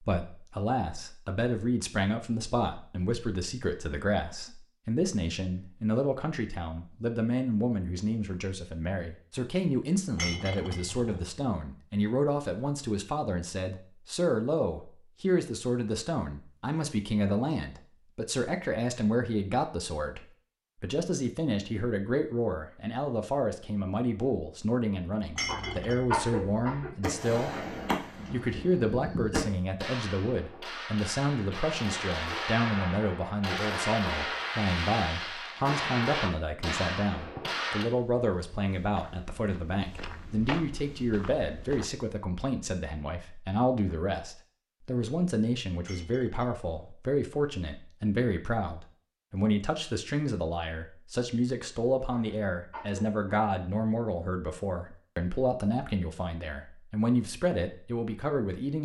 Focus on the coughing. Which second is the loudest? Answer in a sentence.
The volume of the coughing peaks at 26 seconds.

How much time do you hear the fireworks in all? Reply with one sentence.
The fireworks can be heard for 11 seconds in total.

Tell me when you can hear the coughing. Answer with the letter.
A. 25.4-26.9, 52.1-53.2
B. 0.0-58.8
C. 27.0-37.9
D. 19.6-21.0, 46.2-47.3
A.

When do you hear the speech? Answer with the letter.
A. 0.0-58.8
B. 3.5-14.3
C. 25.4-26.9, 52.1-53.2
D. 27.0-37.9
A.